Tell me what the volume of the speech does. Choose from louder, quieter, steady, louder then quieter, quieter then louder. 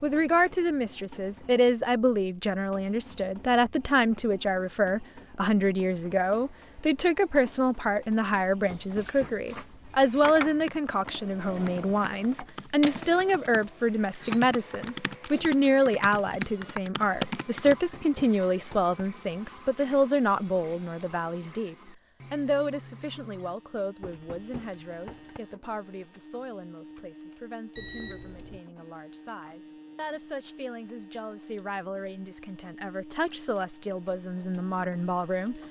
quieter.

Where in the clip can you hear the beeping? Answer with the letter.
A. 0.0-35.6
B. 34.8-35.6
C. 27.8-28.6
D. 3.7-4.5
C.